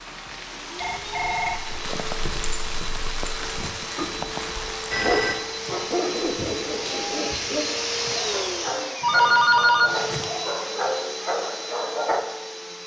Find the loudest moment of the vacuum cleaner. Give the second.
8 s.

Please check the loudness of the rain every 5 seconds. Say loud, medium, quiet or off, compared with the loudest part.
loud, medium, off.